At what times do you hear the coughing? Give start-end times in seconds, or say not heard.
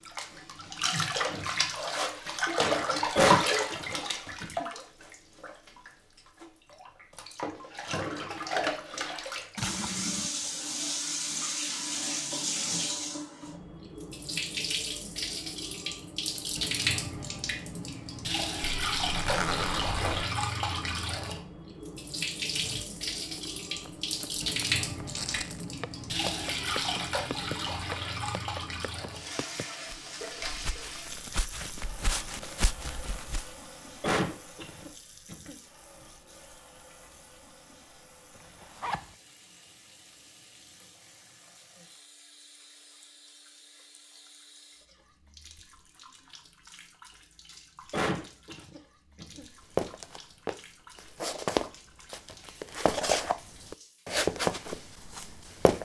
3.1-4.7, 34.0-35.5, 47.9-49.5.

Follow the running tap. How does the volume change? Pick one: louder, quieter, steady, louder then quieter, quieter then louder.
quieter.